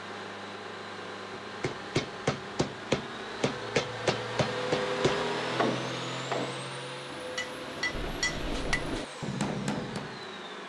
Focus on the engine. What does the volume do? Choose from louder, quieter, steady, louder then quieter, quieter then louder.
louder then quieter.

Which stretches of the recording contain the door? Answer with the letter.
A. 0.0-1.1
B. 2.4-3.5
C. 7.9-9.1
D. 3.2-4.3
C.